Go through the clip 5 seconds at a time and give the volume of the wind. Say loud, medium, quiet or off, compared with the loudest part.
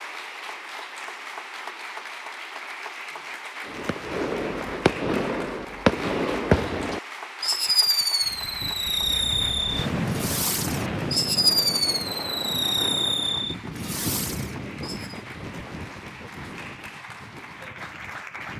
off, loud, loud, medium.